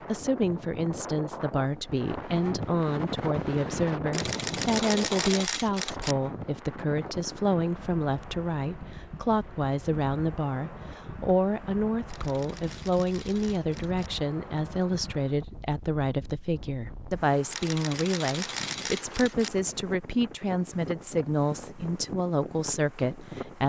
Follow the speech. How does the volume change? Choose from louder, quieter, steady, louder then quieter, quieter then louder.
steady.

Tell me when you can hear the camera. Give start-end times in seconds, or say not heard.
4.1-6.2, 12.1-14.1, 17.5-19.5.